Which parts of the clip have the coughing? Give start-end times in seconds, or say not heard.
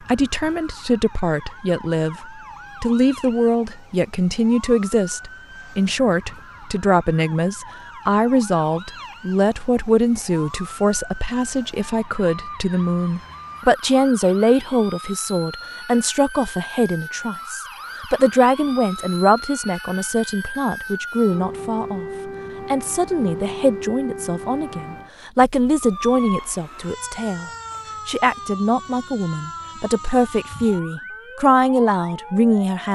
not heard.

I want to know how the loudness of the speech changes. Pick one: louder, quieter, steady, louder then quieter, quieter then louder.
steady.